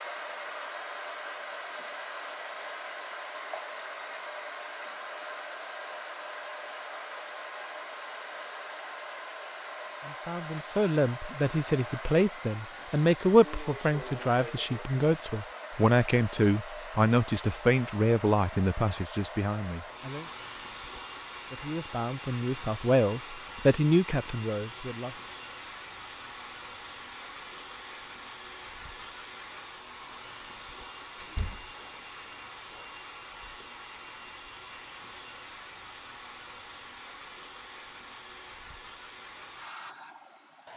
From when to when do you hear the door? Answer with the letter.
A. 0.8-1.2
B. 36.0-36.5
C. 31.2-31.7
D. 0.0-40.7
C.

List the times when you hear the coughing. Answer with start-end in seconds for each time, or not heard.
not heard.